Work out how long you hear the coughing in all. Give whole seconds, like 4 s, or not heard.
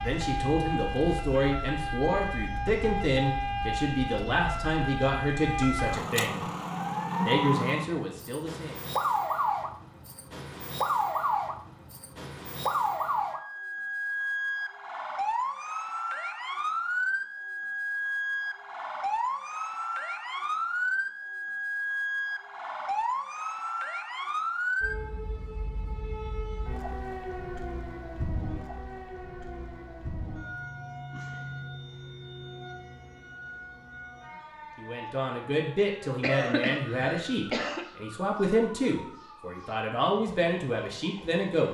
2 s.